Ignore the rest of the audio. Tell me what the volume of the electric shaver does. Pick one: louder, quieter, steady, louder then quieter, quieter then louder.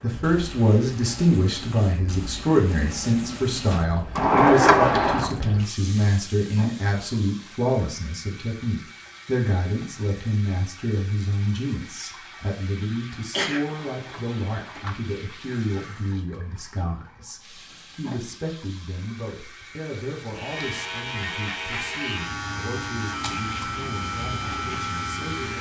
steady.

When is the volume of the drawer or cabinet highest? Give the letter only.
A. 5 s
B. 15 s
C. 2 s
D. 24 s
A.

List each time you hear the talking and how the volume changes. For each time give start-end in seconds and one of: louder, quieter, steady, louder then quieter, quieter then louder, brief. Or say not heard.
0.0-25.5 quieter.